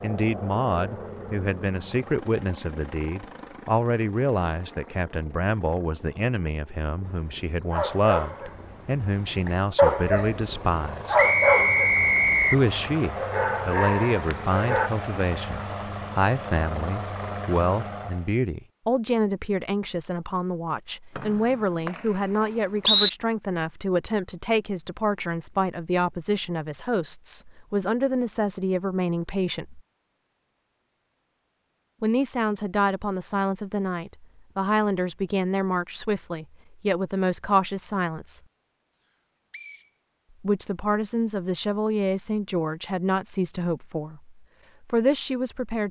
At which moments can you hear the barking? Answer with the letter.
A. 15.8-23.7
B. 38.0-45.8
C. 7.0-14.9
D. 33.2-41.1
C.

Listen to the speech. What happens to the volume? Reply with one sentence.
The loudness of the speech stays about the same.